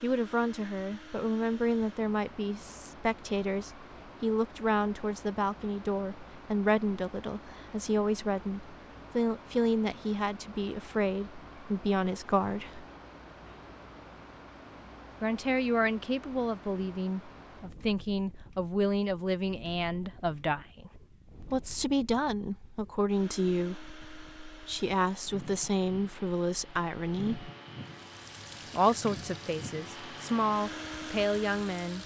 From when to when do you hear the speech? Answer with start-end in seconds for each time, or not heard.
0.0-12.8, 15.2-27.5, 28.7-32.0.